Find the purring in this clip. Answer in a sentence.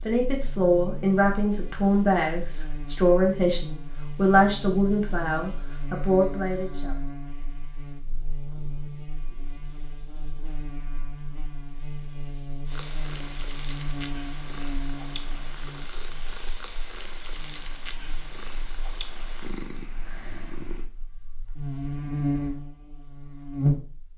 You can hear the purring from 12.7 to 20.9 s.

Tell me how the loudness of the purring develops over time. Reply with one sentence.
The loudness of the purring stays about the same.